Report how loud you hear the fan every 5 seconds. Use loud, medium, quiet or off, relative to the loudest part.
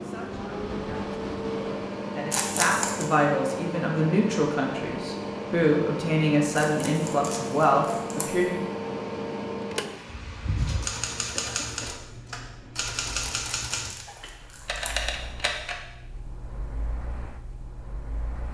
loud, loud, medium, quiet.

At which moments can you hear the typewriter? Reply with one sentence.
The typewriter can be heard from 10.6 to 15.8 s.